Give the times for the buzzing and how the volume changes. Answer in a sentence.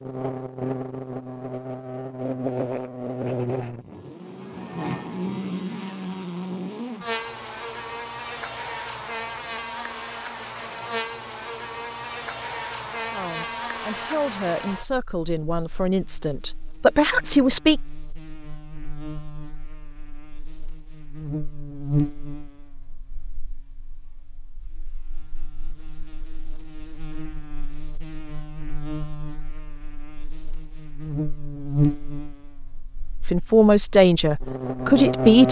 The buzzing can be heard from 0.0 to 35.4 s, getting quieter then louder.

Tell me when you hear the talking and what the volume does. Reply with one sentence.
You can hear the talking from 13.1 to 17.8 s, getting louder; and briefly from 33.2 to 35.4 s.